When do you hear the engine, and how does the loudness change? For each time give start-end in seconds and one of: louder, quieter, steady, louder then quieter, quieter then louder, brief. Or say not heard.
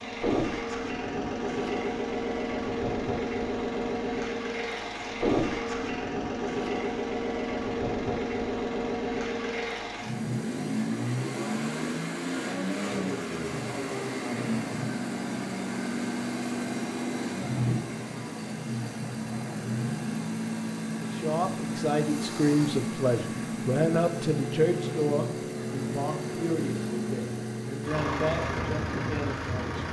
0.0-29.8 steady.